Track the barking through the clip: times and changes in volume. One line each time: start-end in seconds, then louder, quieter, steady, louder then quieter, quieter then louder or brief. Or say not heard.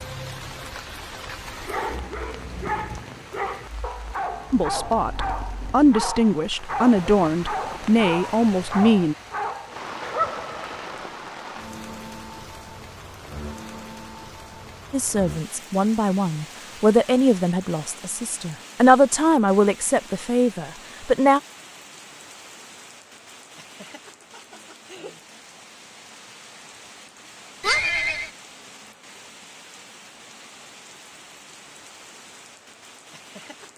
1.6-11.1 steady.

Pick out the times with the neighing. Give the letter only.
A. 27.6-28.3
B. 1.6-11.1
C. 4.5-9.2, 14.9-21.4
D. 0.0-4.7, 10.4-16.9
A.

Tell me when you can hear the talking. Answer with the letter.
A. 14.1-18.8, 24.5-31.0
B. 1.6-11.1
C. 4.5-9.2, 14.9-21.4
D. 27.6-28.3
C.